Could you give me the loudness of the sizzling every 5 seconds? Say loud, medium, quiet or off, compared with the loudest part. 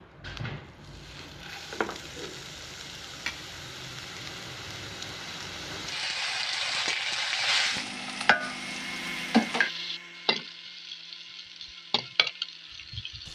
medium, loud, medium.